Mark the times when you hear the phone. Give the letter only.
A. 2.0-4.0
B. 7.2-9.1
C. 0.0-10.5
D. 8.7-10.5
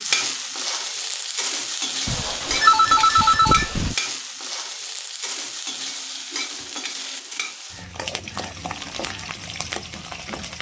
A.